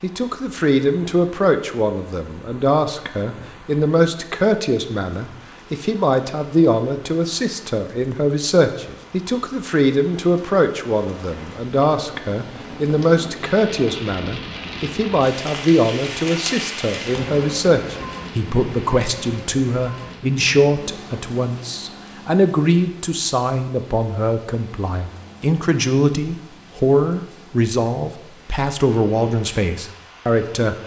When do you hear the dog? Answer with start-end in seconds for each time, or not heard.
not heard.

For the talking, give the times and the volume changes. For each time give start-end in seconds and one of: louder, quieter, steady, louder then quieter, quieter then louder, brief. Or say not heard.
0.0-30.8 steady.